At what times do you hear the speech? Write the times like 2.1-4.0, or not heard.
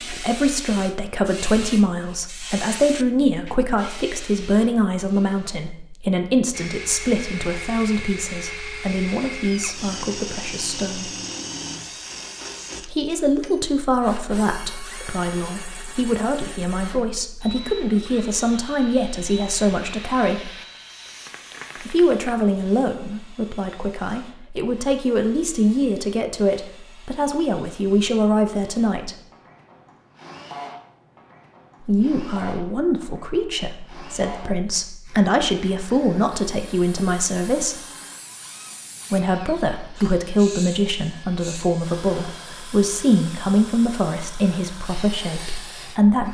0.0-11.1, 12.8-20.5, 21.8-29.1, 31.9-37.8, 39.1-46.2.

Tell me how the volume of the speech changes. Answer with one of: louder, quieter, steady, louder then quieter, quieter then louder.
steady.